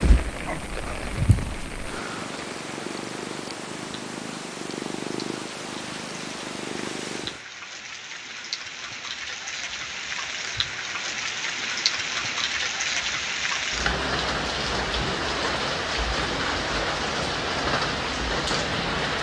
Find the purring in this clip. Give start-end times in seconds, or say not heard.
0.0-7.5.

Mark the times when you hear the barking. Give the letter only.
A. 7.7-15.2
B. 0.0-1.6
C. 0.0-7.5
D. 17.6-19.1
B.